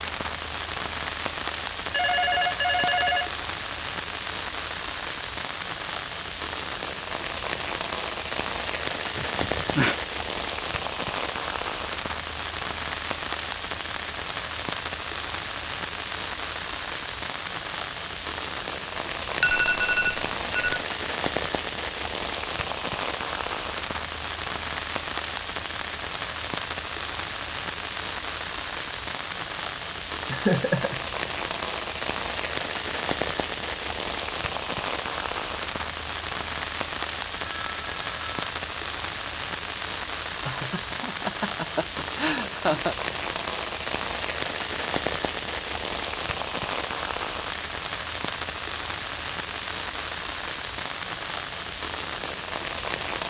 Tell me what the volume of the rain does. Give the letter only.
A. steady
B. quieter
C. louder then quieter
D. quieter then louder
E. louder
A.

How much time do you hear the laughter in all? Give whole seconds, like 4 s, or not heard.
4 s.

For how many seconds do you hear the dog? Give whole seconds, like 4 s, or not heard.
not heard.